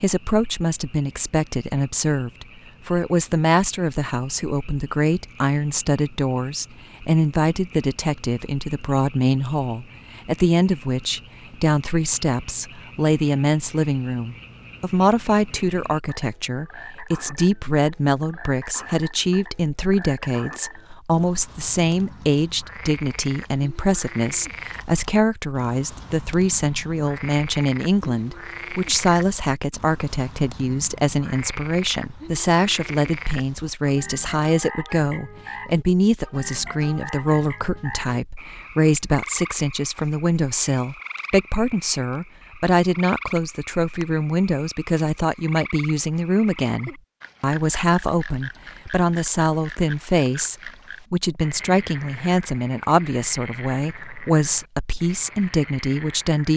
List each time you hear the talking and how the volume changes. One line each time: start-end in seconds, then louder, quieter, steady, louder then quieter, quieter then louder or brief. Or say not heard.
0.0-56.5 steady.